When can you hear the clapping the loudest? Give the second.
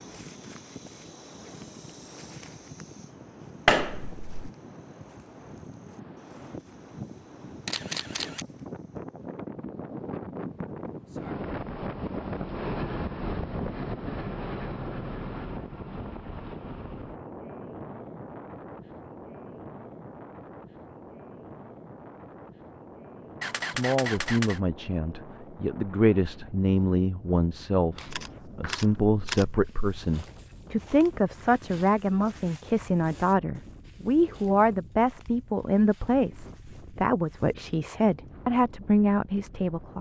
4 s.